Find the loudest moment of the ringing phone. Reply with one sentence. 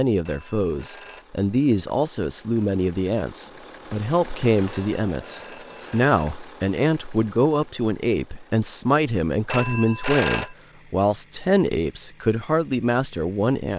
The volume of the ringing phone peaks at 10 seconds.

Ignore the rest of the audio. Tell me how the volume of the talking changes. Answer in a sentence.
The loudness of the talking stays about the same.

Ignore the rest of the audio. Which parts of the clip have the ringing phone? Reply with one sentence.
You can hear the ringing phone from 0.2 to 1.2 s, from 4.8 to 6.4 s and from 9.4 to 10.6 s.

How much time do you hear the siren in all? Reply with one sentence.
The siren can't be heard in this clip.